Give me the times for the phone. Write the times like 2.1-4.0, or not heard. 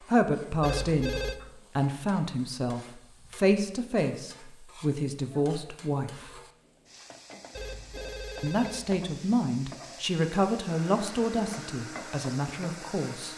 0.6-1.4, 7.5-9.0.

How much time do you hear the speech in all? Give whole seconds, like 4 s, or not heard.
11 s.